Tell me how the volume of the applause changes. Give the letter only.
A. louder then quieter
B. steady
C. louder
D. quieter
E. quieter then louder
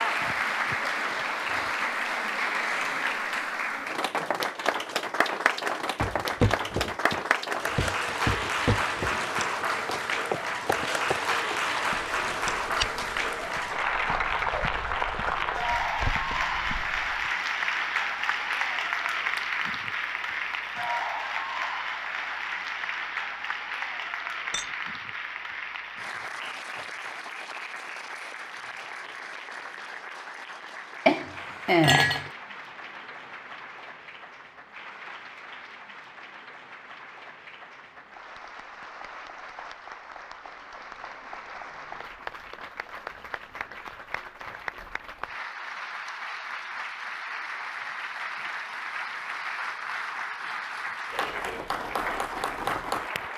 E.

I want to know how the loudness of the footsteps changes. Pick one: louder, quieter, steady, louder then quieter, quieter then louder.
quieter then louder.